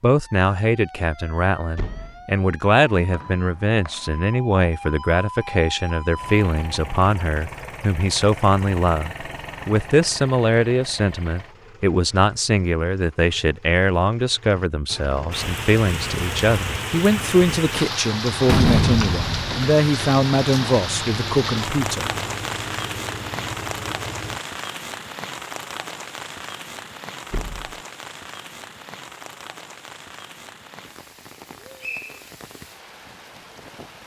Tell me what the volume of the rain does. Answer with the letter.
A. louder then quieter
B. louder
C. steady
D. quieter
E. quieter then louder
D.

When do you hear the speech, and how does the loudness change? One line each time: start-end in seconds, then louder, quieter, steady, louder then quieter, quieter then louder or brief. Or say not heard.
0.0-22.1 steady.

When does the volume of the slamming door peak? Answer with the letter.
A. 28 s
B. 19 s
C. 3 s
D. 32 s
B.